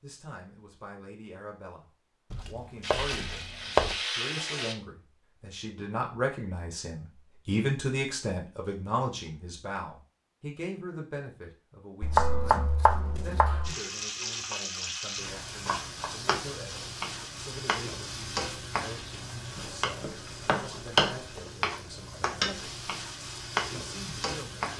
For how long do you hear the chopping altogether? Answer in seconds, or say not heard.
5 s.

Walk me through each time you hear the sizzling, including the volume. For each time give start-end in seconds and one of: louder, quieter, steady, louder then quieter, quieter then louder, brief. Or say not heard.
2.8-4.8 brief
13.7-24.7 steady.